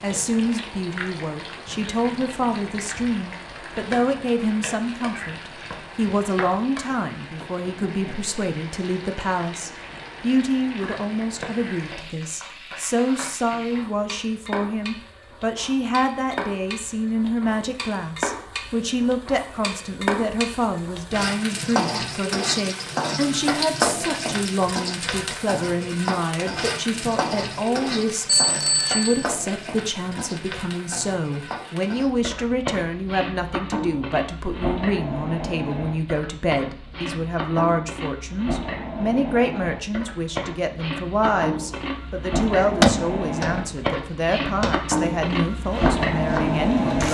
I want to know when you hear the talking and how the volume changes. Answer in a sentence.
The talking can be heard from 0.0 to 47.0 s, at a steady volume.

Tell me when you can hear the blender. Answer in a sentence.
The blender can't be heard in this clip.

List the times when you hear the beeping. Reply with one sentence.
The beeping can be heard from 28.2 to 29.2 s.